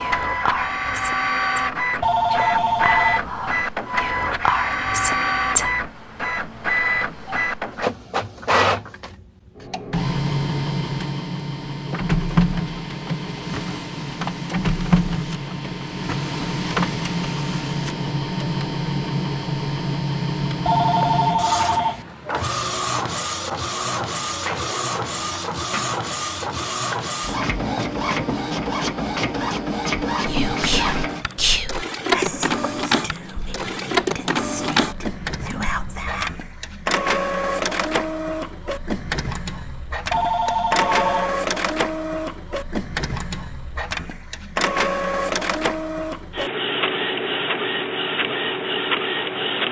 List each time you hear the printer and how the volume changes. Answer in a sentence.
You can hear the printer from 0.0 to 49.6 s, at a steady volume.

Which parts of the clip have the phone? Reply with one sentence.
You can hear the phone from 2.0 to 3.2 s, from 20.6 to 22.1 s and from 40.1 to 41.3 s.